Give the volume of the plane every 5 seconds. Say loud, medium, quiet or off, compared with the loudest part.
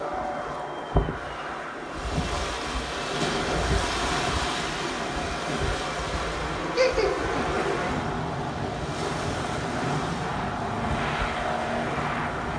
medium, loud, loud.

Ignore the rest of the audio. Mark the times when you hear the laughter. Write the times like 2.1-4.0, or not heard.
6.8-7.7.